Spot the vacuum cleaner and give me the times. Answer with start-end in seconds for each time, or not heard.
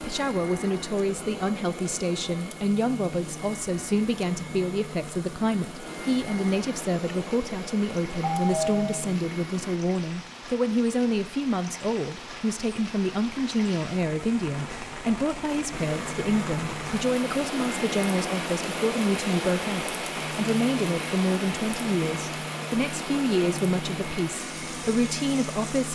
0.0-9.8, 15.7-25.8.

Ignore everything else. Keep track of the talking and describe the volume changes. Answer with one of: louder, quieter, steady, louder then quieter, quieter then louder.
steady.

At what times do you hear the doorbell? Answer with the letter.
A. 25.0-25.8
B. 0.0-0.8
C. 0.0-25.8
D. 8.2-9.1
D.